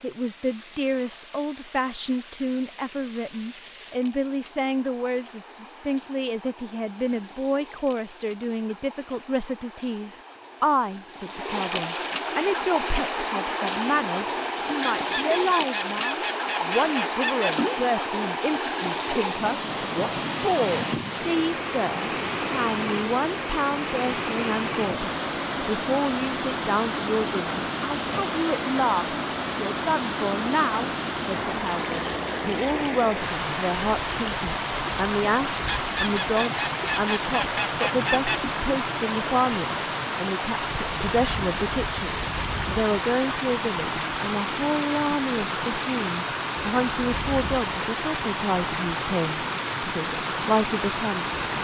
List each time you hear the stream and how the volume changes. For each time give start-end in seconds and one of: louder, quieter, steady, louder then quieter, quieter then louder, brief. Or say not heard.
0.0-51.5 louder.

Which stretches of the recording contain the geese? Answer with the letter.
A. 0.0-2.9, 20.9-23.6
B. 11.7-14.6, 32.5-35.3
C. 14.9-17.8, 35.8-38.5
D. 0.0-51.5
C.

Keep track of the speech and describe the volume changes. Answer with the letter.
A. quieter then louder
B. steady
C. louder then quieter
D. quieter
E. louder
B.